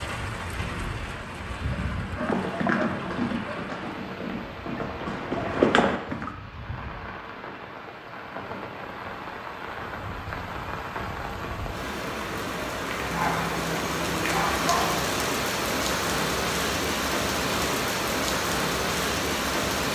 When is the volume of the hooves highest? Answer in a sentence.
The volume of the hooves peaks at 6 seconds.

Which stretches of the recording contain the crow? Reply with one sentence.
You can't hear the crow here.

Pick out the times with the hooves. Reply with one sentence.
You can hear the hooves from 2.1 to 6.3 s.